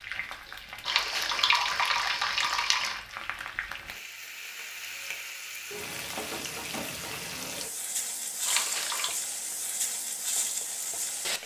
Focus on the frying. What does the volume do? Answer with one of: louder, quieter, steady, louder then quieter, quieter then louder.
louder.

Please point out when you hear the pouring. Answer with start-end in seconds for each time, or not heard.
0.8-3.0, 8.4-9.2.